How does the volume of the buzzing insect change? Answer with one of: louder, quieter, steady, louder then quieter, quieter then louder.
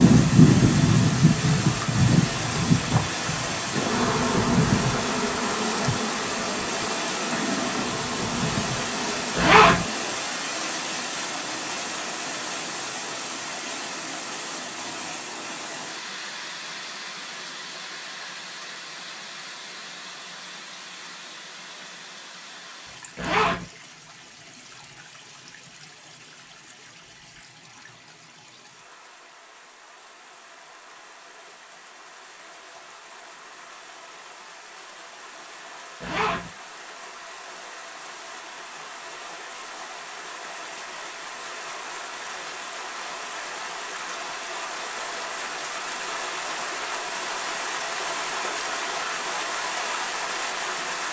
quieter.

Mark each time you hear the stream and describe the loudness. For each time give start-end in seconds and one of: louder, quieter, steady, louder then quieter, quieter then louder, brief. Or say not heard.
0.0-51.0 quieter then louder.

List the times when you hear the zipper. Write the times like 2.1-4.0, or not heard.
9.3-9.8, 23.1-23.6, 36.0-36.5.